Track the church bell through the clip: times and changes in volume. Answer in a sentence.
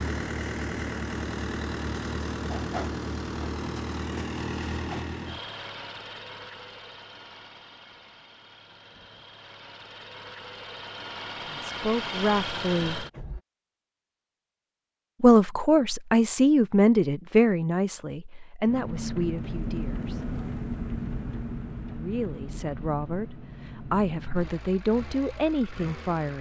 The church bell can't be heard in this clip.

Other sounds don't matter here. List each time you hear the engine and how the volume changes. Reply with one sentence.
You can hear the engine from 0.0 to 13.4 s, getting quieter then louder; and from 18.6 to 26.3 s, getting quieter.